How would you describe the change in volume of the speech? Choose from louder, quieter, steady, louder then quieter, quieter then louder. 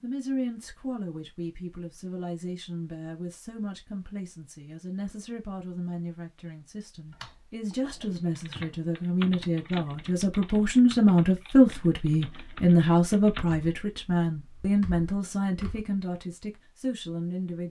louder then quieter.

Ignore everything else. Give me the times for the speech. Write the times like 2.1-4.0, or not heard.
0.0-17.6.